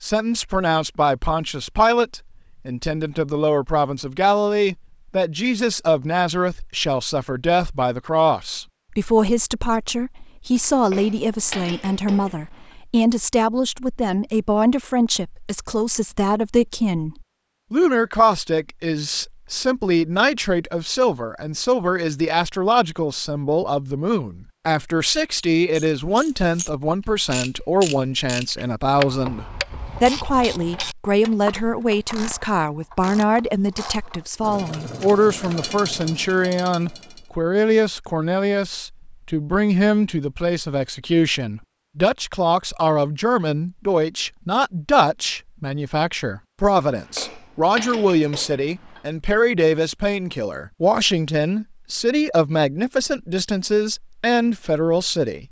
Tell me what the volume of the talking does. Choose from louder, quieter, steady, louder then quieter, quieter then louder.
steady.